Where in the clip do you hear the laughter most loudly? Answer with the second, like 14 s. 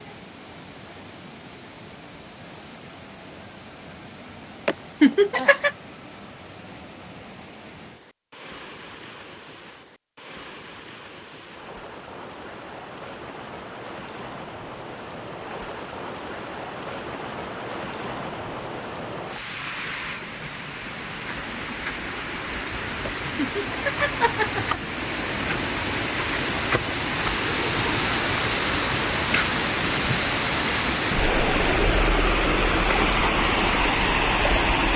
5 s.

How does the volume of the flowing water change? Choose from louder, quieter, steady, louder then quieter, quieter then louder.
louder.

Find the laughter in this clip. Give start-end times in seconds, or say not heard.
4.7-5.8, 23.1-24.8.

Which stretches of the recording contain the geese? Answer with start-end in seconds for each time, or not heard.
not heard.